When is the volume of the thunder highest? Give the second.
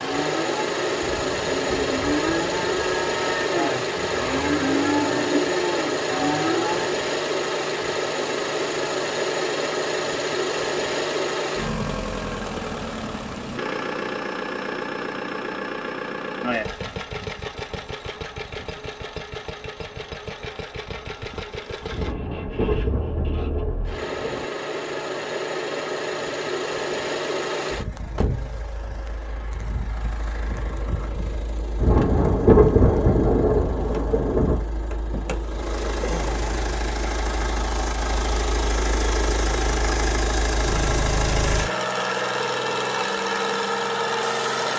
33 s.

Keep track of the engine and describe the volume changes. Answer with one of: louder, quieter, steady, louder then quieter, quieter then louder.
quieter then louder.